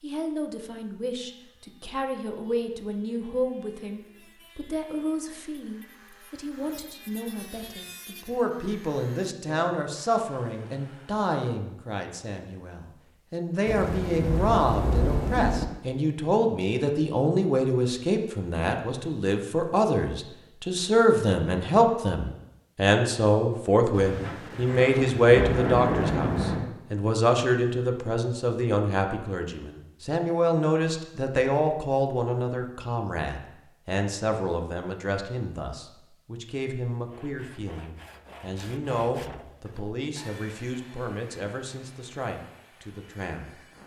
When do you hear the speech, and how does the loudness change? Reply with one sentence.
You can hear the speech from 0.0 to 43.6 s, getting louder then quieter.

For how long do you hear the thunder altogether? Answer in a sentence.
The thunder can be heard for 5 seconds in total.